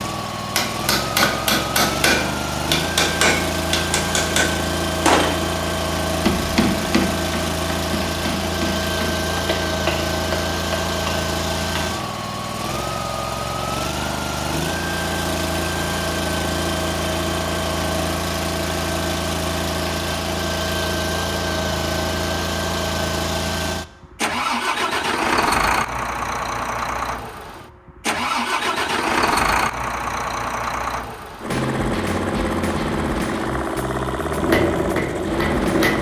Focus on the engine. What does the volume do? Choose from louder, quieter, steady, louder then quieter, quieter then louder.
steady.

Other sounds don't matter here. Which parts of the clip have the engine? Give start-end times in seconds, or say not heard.
0.0-35.9.